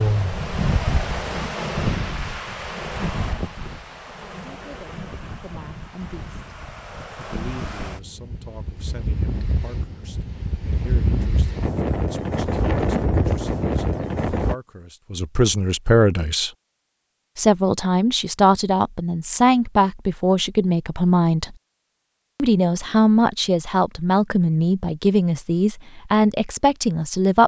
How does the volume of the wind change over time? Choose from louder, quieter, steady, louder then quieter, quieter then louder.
quieter then louder.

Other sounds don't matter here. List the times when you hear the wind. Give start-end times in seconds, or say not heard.
0.0-14.6.